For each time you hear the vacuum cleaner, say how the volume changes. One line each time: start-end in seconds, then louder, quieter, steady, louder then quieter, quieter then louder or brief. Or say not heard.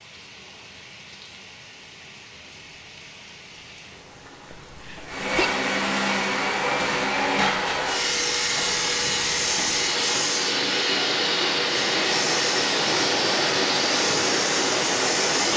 5.0-15.5 steady.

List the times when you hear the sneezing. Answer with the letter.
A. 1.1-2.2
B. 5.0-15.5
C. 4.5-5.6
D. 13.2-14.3
C.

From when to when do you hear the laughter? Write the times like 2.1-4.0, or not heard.
not heard.